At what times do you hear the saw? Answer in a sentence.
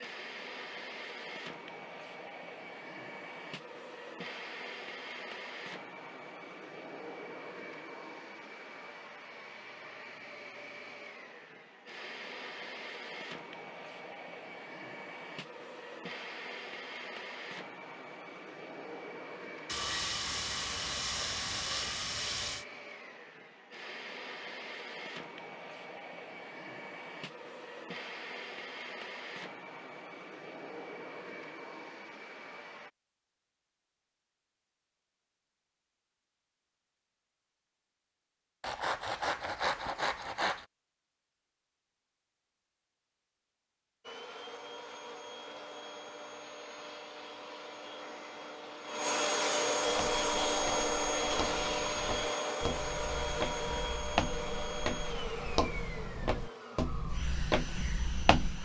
The saw can be heard from 19.6 to 22.6 s and from 38.6 to 40.6 s.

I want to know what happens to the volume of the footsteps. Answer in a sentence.
The loudness of the footsteps goes up.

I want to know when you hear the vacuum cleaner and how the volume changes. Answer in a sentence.
You can hear the vacuum cleaner from 0.0 to 32.9 s, at a steady volume; and from 44.0 to 58.6 s, getting louder then quieter.